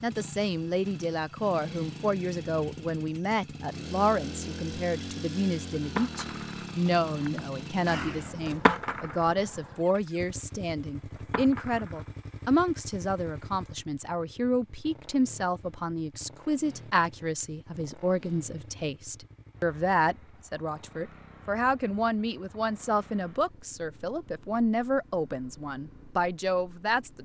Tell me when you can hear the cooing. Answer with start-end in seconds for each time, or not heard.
not heard.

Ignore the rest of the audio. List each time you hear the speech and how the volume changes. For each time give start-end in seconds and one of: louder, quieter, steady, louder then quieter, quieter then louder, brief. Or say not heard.
0.0-27.2 steady.